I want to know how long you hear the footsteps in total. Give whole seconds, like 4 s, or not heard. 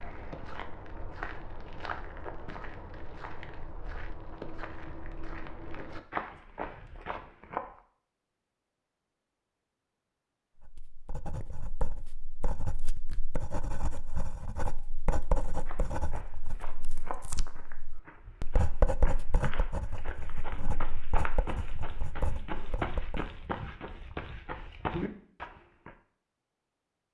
18 s.